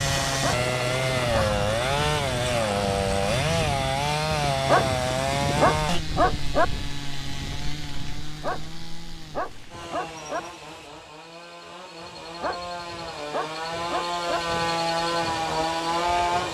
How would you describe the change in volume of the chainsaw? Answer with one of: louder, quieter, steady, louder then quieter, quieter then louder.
quieter then louder.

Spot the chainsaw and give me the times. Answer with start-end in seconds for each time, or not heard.
0.0-16.4.